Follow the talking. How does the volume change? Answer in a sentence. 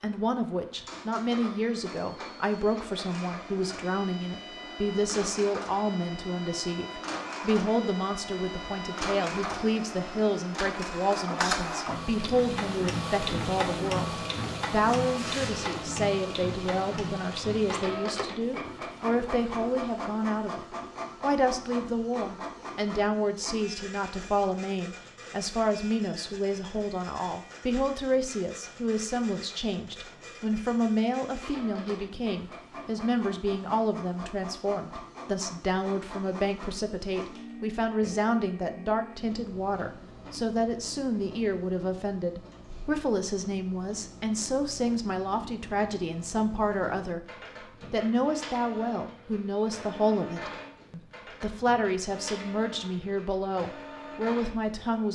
The volume of the talking stays about the same.